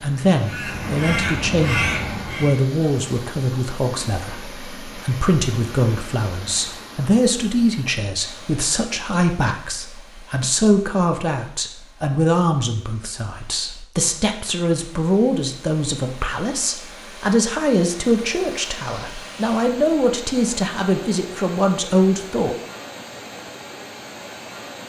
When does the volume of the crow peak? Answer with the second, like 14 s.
2 s.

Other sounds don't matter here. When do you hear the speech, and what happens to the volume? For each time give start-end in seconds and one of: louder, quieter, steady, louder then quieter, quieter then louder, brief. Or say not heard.
0.0-22.6 steady.